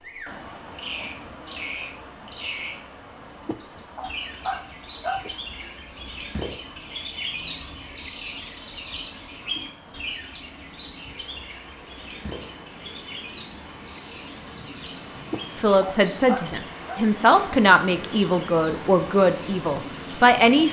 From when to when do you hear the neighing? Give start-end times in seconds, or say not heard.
not heard.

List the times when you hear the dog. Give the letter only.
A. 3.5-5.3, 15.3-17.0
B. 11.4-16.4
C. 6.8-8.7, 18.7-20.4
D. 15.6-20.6
A.